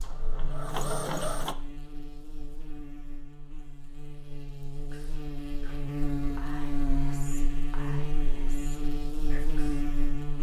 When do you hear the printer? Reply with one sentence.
You can hear the printer from 0.0 to 1.6 s.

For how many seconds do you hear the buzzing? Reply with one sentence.
The buzzing can be heard for 10 seconds in total.